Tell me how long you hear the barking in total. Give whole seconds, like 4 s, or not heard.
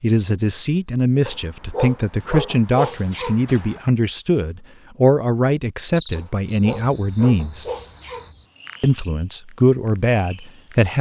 5 s.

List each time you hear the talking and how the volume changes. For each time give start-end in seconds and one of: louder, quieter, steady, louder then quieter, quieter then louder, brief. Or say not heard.
0.0-7.7 steady
8.8-10.9 brief.